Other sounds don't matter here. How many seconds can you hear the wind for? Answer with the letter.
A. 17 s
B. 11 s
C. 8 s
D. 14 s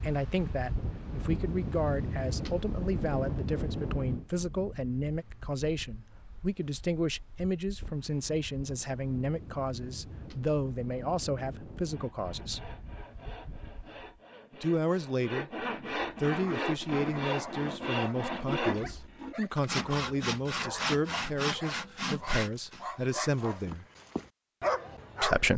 D.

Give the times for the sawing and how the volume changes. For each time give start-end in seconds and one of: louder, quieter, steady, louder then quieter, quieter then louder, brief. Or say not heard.
11.8-22.9 louder.